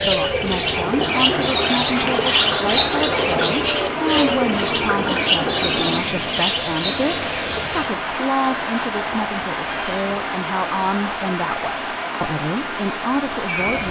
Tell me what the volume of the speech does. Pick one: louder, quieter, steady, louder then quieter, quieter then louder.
steady.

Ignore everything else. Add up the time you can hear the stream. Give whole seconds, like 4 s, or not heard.
14 s.